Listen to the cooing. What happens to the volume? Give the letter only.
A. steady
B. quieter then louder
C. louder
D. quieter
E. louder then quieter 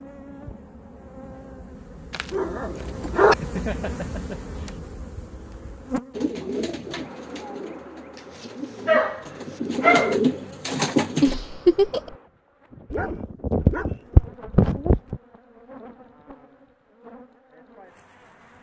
B.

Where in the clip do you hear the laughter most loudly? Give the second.
12 s.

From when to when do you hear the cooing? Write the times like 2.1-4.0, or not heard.
6.1-11.3.